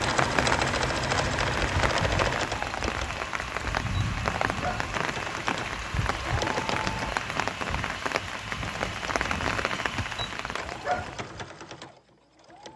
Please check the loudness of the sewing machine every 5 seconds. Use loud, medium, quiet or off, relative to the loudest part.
loud, medium, medium.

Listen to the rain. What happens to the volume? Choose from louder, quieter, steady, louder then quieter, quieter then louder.
steady.